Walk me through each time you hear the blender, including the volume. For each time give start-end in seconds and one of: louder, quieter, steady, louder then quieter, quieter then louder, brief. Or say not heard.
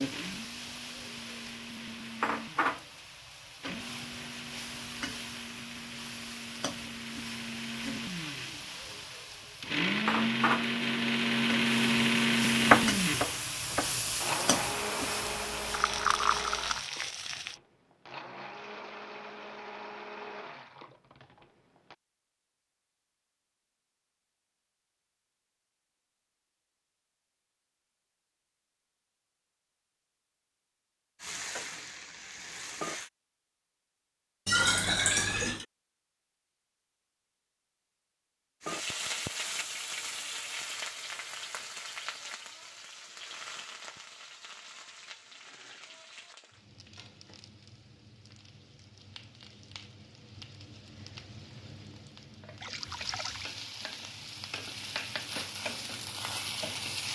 0.0-21.9 louder then quieter.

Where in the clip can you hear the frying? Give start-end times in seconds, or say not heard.
0.0-17.6, 31.2-33.1, 38.6-57.1.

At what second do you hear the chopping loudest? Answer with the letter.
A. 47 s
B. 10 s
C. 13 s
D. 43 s
C.